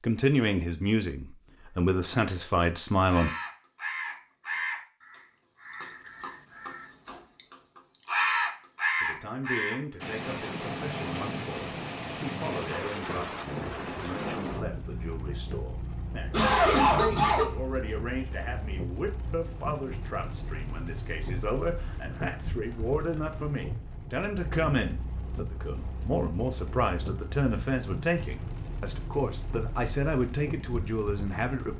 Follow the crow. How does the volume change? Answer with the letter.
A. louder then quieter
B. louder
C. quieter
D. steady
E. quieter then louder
E.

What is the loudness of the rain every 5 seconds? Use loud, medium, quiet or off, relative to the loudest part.
off, off, loud, medium, medium, medium, medium.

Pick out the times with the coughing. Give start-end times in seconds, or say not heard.
16.3-17.5.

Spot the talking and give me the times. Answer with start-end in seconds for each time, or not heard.
0.0-3.3, 9.0-31.7.